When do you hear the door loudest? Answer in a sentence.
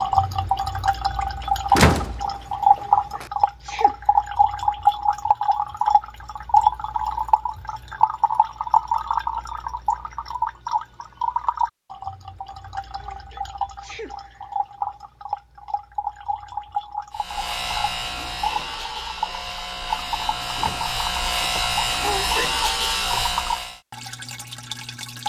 The volume of the door peaks at 2 seconds.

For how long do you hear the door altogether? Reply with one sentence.
You can hear the door for 2 seconds altogether.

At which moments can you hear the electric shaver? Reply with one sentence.
You can hear the electric shaver from 17.1 to 23.8 s.